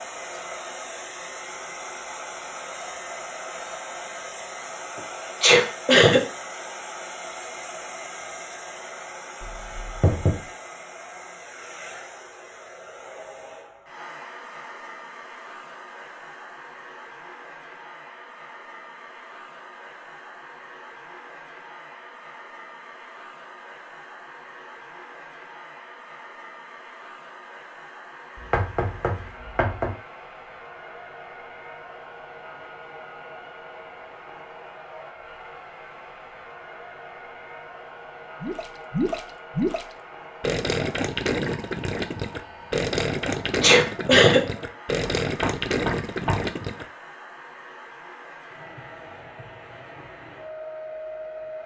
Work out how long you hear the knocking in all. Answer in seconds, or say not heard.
4 s.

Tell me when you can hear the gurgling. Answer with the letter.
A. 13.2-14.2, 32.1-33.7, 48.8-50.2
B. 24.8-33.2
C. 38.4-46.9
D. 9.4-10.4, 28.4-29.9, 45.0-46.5
C.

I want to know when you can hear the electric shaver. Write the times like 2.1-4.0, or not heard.
not heard.